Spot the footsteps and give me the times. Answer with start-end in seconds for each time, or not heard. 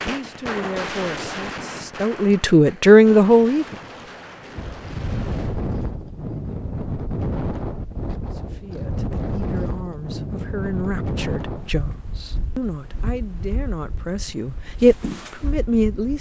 not heard.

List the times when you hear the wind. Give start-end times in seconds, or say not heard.
4.5-16.1.